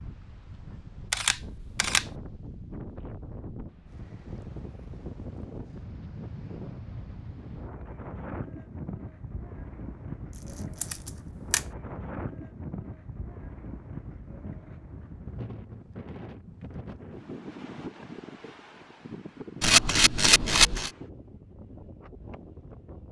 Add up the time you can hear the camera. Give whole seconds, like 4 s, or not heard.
3 s.